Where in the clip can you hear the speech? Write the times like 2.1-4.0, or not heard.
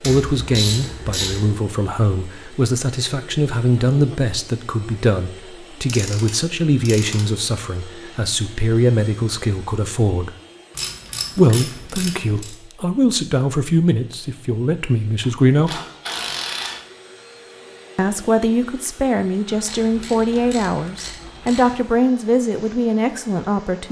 0.0-10.3, 11.3-15.8, 17.9-23.8.